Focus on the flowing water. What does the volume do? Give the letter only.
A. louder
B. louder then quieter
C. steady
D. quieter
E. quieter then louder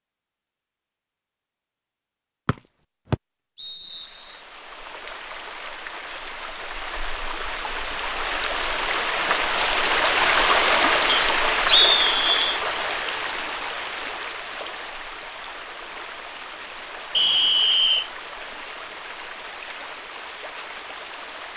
B.